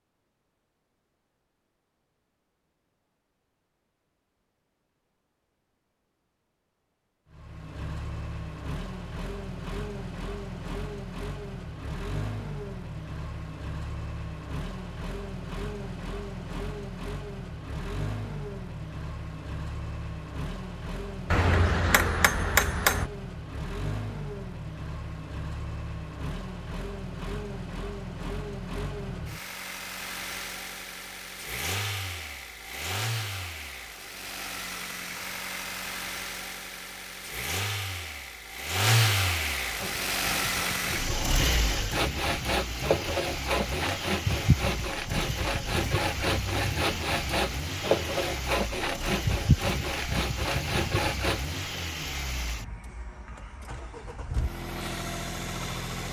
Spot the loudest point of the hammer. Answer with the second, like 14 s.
23 s.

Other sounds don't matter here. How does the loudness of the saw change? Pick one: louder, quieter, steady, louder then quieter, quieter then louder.
louder.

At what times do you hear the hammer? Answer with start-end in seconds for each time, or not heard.
21.3-23.1.